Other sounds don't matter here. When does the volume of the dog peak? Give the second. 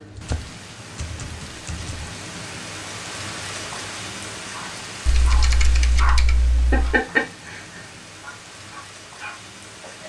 7 s.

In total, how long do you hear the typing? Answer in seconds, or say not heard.
4 s.